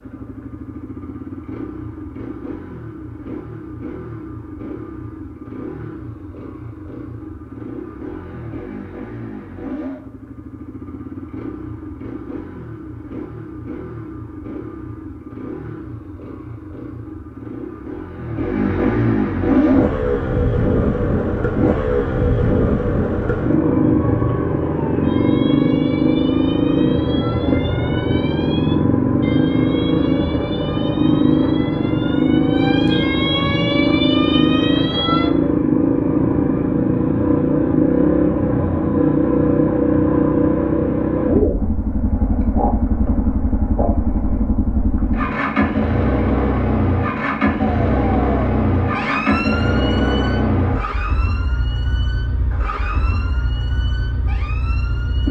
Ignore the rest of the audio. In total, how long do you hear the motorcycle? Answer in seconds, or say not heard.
55 s.